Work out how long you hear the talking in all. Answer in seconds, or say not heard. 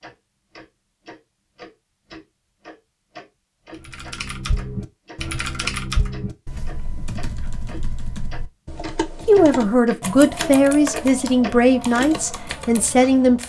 4 s.